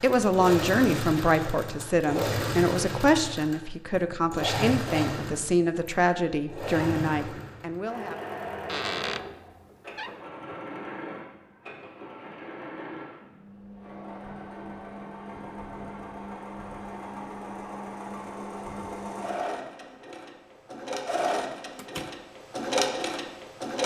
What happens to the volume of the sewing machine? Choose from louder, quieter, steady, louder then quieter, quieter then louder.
quieter then louder.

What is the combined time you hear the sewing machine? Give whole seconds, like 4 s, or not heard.
24 s.